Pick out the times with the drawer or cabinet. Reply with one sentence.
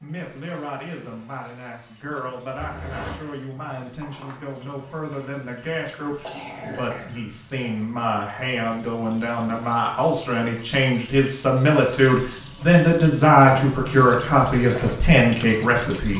The drawer or cabinet can't be heard in this clip.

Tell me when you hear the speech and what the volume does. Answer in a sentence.
The speech can be heard from 0.0 to 16.1 s, getting louder.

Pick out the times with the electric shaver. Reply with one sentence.
The electric shaver can't be heard in this clip.